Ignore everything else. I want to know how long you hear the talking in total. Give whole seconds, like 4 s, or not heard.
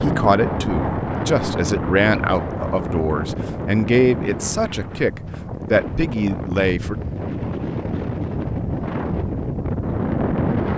7 s.